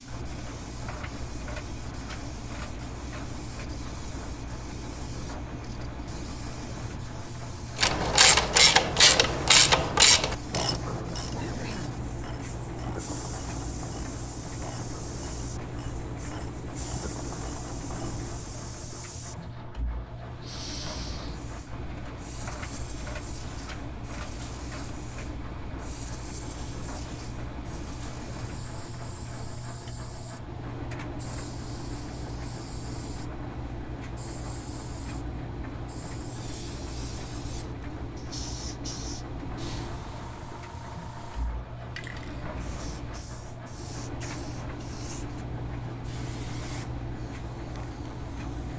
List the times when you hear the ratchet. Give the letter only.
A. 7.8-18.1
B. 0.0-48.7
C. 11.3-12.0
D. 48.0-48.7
A.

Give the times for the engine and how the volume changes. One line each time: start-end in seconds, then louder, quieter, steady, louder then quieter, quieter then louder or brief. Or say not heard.
0.0-48.7 steady.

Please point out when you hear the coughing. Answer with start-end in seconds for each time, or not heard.
11.3-12.0.